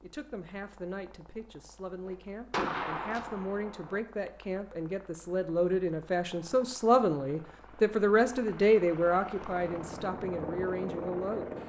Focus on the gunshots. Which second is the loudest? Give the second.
3 s.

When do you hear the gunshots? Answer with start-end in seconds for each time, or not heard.
2.0-4.0.